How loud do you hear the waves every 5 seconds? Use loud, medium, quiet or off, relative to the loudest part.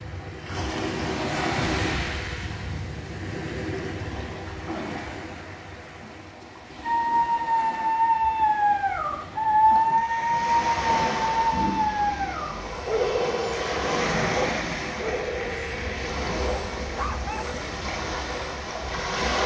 loud, medium, loud, loud.